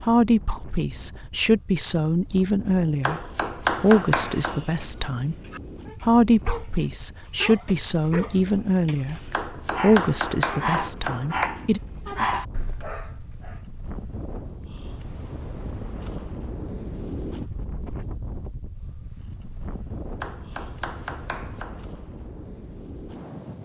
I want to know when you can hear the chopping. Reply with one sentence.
You can hear the chopping from 3.0 to 4.7 s, from 9.3 to 11.5 s and from 20.2 to 21.9 s.